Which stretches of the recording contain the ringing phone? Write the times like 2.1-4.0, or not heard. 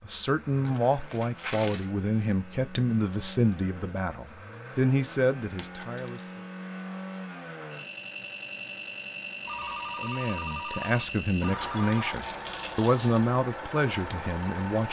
9.4-12.2.